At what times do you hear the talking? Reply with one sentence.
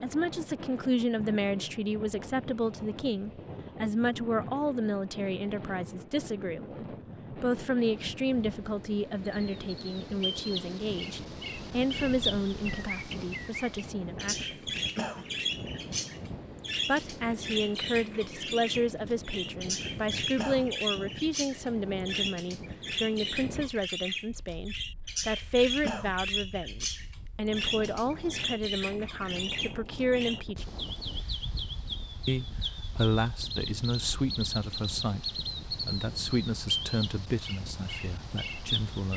You can hear the talking from 0.0 to 14.7 s, from 16.9 to 30.7 s and from 32.2 to 39.1 s.